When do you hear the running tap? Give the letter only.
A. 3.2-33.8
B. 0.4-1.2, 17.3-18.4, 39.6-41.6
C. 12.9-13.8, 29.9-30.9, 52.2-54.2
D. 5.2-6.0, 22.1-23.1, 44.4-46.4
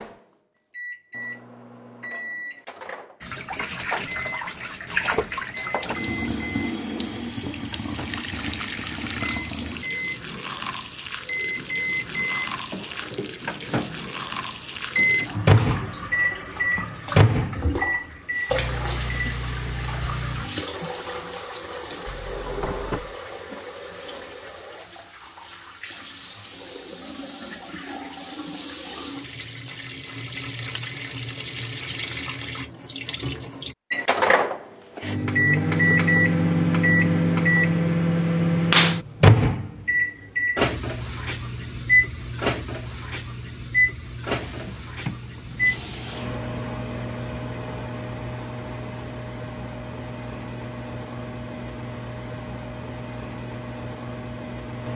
A.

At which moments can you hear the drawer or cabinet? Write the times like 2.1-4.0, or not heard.
5.2-6.0, 22.1-23.1, 44.4-46.4.